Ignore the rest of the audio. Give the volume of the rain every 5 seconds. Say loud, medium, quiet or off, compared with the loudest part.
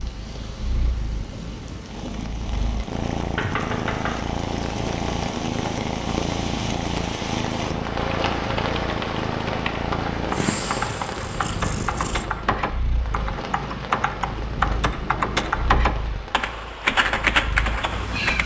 medium, loud, medium, medium.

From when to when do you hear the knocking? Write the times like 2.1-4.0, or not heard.
3.4-4.2.